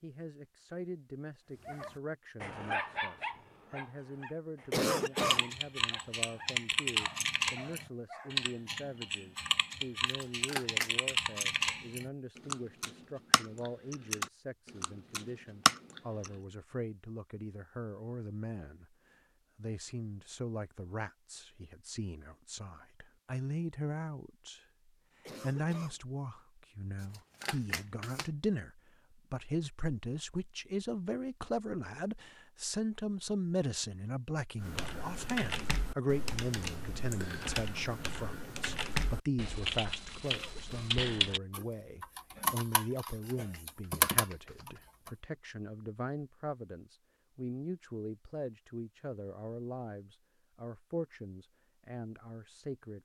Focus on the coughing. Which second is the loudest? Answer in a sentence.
The loudest moment of the coughing is at 5 seconds.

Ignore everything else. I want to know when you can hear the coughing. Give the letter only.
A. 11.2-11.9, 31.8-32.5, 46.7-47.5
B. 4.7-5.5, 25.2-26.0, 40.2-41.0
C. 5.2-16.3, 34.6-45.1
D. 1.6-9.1
B.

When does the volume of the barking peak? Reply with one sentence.
The loudest moment of the barking is at 3 seconds.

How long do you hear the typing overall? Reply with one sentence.
You can hear the typing for 22 seconds altogether.